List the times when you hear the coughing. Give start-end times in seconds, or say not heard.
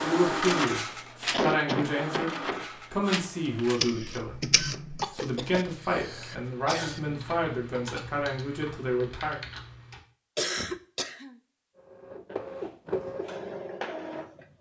1.3-2.6, 5.0-7.0, 10.3-11.3.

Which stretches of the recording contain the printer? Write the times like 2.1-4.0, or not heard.
0.0-5.2, 11.8-14.5.